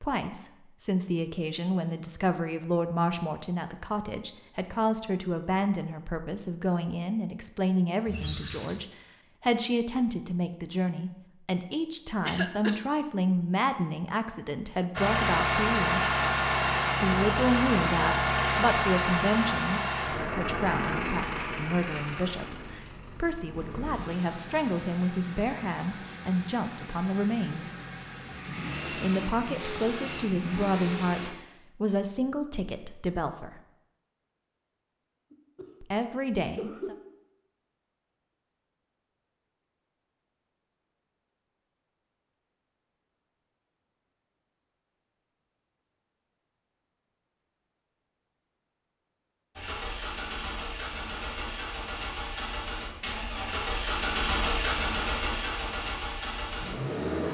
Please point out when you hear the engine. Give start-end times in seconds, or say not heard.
14.9-31.3, 49.5-57.2.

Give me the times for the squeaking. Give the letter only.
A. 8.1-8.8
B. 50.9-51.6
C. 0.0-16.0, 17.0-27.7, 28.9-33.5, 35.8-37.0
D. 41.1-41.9
A.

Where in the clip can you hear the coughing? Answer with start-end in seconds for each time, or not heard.
12.2-12.8, 35.3-37.0.